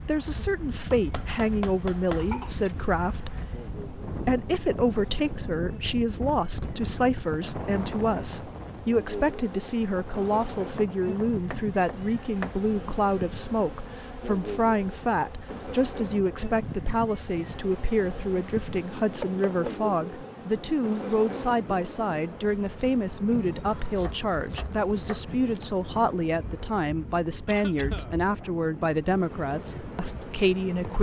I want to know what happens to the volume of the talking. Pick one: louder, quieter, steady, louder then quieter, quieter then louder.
steady.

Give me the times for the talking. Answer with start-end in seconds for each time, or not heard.
0.0-30.9.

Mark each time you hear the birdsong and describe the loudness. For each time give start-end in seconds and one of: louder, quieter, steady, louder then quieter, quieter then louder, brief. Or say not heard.
not heard.